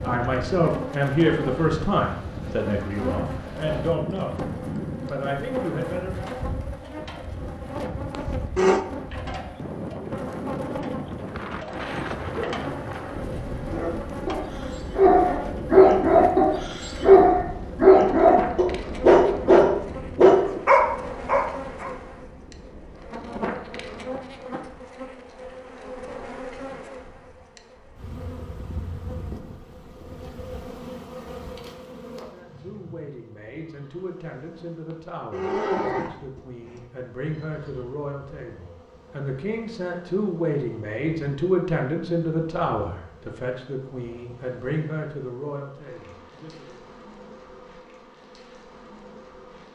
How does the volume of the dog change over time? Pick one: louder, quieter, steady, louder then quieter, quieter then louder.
louder.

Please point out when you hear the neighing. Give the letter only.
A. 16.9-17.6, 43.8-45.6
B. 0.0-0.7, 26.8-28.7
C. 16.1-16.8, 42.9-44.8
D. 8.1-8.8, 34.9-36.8
D.